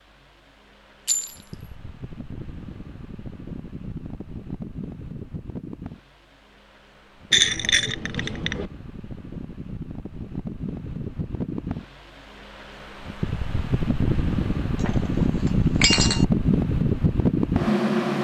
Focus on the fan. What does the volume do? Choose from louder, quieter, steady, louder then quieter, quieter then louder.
louder.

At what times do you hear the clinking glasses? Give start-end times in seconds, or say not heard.
1.1-1.7, 7.3-8.7, 14.8-16.2.